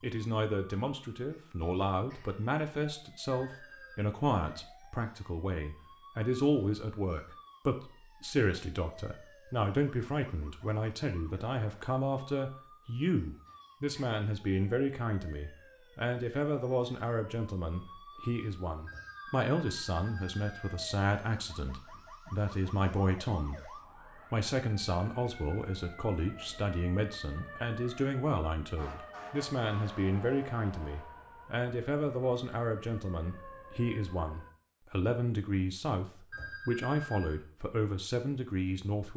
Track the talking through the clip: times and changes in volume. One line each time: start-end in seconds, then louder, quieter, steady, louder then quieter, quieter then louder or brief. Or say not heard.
0.0-39.1 steady.